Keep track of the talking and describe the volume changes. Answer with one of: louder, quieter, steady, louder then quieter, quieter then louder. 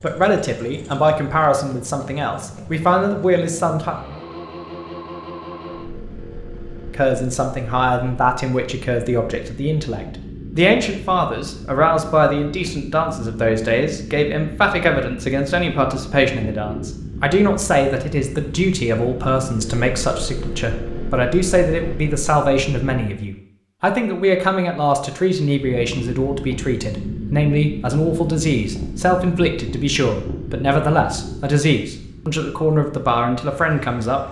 steady.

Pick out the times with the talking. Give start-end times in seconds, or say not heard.
0.0-4.0, 6.9-34.2.